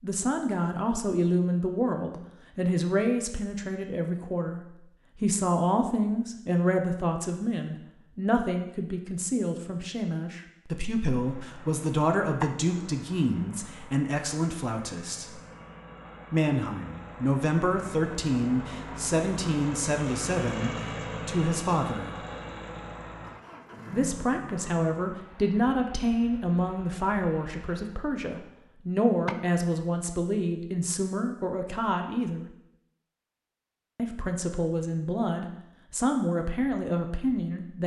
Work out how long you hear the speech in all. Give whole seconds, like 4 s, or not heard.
34 s.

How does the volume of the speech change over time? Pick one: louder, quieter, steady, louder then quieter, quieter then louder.
steady.